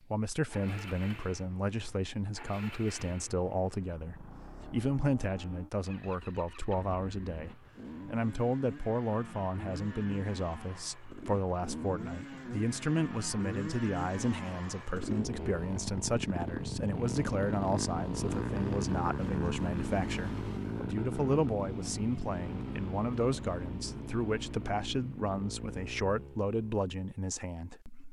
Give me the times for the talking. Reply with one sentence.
The talking can be heard from 0.1 to 28.0 s.